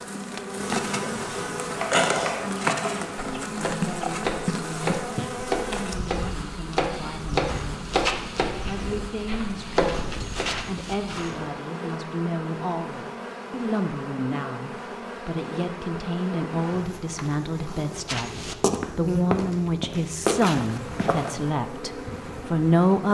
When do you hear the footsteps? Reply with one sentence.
You can hear the footsteps from 7.5 to 11.4 s and from 18.1 to 21.5 s.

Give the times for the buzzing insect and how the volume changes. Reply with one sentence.
You can hear the buzzing insect from 0.0 to 23.0 s, getting quieter.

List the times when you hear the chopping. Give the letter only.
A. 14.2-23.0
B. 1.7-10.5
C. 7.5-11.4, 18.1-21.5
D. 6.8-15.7
B.